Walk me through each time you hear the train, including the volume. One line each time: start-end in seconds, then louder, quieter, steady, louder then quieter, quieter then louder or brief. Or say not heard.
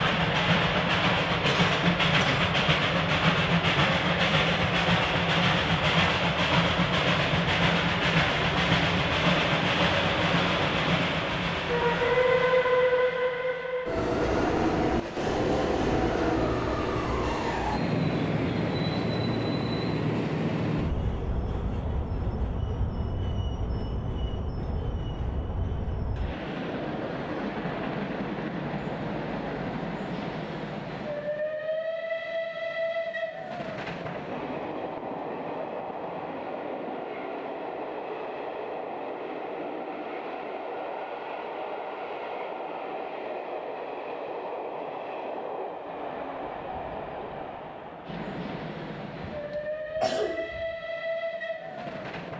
0.0-52.3 quieter.